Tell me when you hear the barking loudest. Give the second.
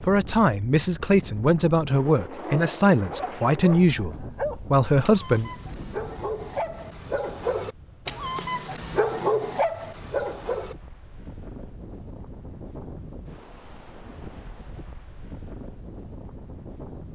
9 s.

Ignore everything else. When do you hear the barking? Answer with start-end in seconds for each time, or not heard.
2.4-10.8.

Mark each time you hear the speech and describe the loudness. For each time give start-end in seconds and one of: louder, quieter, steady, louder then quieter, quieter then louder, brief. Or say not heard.
0.0-5.5 steady.